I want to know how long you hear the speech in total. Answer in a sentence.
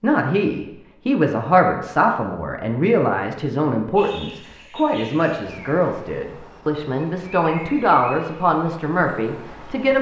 The speech can be heard for 10 seconds in total.